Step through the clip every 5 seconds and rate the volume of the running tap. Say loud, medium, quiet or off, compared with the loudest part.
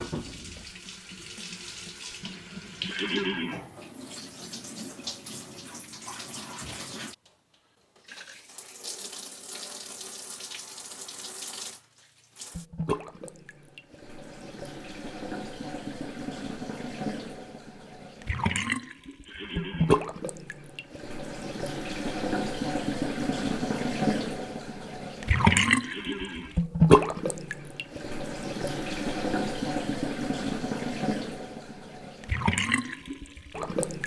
quiet, quiet, quiet, medium, medium, loud, medium.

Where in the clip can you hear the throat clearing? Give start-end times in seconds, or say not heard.
2.9-3.6, 19.2-20.1, 25.8-26.6.